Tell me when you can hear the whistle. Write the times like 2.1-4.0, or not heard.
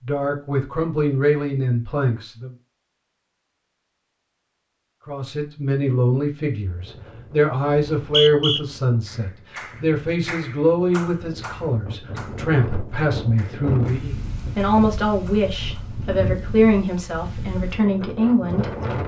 7.8-8.6.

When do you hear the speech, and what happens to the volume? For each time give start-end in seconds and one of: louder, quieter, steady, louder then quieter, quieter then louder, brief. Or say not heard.
0.1-2.5 brief
5.0-19.0 steady.